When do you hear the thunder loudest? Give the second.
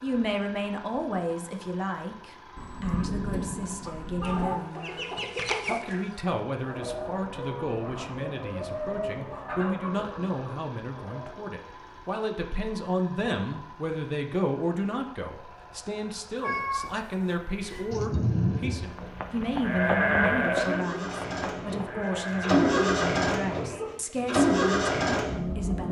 18 s.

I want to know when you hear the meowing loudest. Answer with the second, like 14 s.
17 s.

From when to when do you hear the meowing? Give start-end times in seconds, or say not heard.
16.4-17.9.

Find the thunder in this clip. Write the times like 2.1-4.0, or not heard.
2.5-4.5, 17.9-18.9.